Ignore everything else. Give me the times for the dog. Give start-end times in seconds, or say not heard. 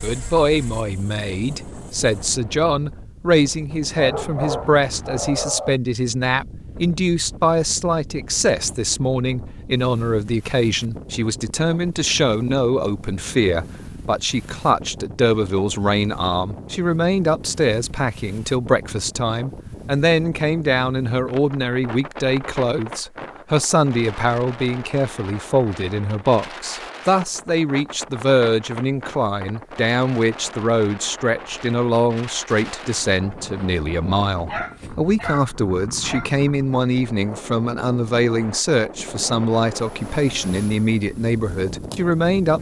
4.0-5.8, 34.5-36.3.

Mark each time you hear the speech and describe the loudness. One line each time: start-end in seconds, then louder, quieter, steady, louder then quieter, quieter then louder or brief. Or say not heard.
0.0-42.5 steady.